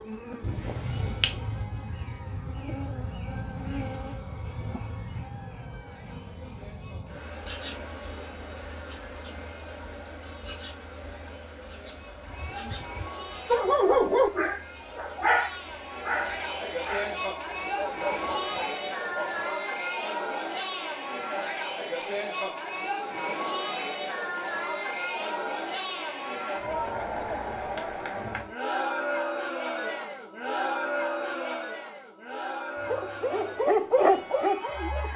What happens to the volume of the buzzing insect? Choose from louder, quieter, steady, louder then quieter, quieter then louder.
quieter.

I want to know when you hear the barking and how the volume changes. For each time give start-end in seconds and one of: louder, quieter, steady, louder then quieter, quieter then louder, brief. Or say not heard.
13.4-19.4 quieter
32.8-35.1 brief.